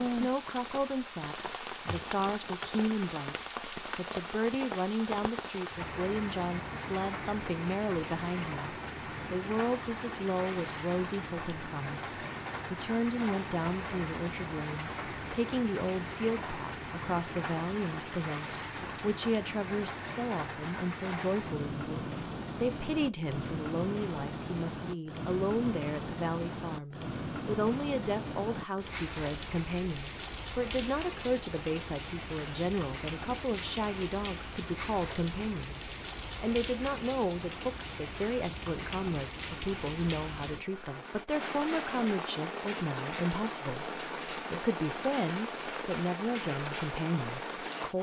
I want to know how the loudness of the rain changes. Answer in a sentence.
The loudness of the rain stays about the same.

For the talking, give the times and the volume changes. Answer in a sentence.
You can hear the talking from 0.0 to 47.9 s, at a steady volume.